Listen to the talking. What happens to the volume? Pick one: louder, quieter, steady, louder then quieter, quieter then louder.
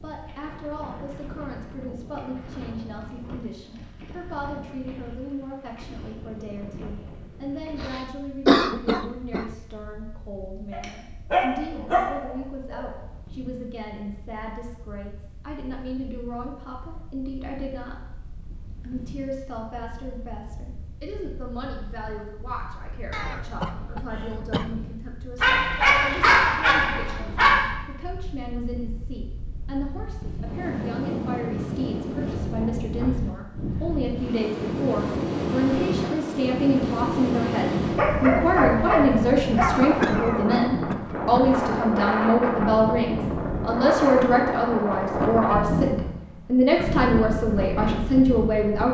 louder.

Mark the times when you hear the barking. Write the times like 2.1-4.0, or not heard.
10.7-12.9, 25.4-27.6, 37.9-39.8.